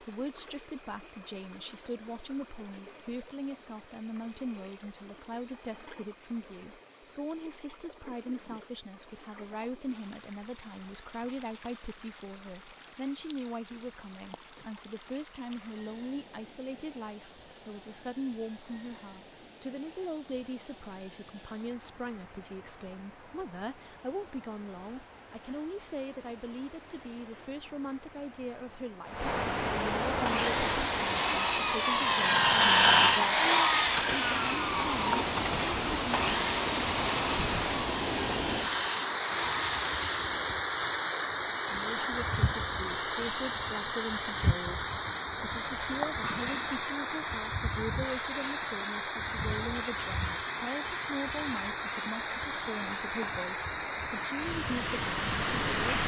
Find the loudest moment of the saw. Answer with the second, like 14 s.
33 s.